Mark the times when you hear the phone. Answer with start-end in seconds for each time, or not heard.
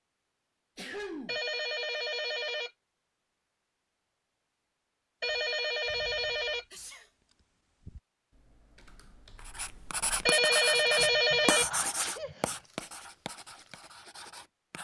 1.2-2.7, 5.2-6.7, 10.2-11.7.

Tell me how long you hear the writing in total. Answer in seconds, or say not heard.
5 s.